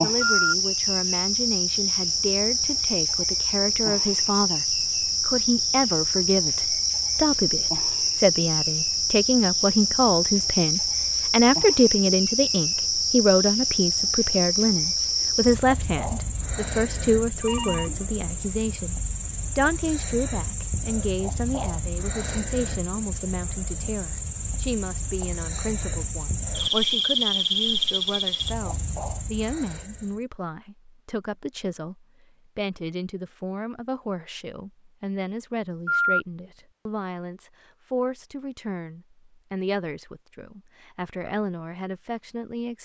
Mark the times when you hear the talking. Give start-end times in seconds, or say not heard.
0.0-42.8.